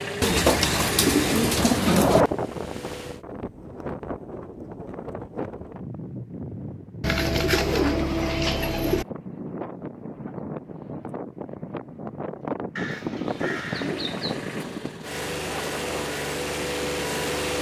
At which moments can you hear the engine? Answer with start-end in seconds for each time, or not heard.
0.0-3.2, 13.4-17.5.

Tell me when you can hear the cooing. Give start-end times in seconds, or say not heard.
0.2-2.2, 7.0-9.1, 12.8-14.4.